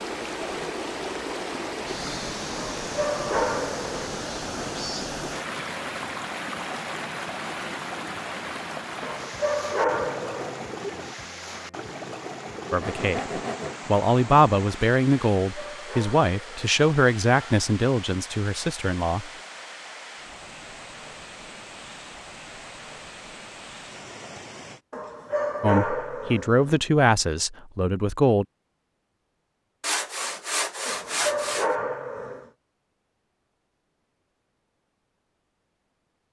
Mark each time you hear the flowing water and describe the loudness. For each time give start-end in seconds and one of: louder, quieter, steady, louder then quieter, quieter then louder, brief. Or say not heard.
0.0-24.8 quieter.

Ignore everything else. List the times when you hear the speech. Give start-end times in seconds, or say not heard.
12.7-19.3, 25.6-28.4.